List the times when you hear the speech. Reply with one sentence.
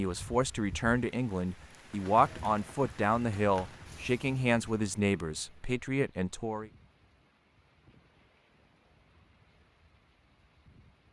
The speech can be heard from 0.0 to 6.7 s.